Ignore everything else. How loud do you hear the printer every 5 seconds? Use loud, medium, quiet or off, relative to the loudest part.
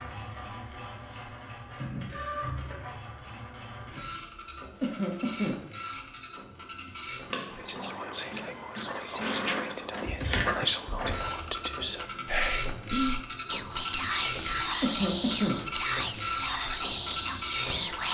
medium, medium, loud, loud.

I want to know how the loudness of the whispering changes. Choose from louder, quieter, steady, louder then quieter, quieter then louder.
steady.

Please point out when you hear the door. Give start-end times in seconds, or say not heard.
9.8-11.6.